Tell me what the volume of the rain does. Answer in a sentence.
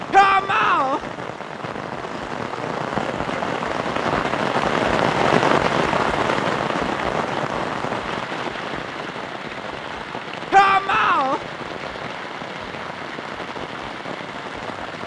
The loudness of the rain goes up, then down.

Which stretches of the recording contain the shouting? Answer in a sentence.
The shouting can be heard from 0.1 to 1.0 s and from 10.5 to 11.4 s.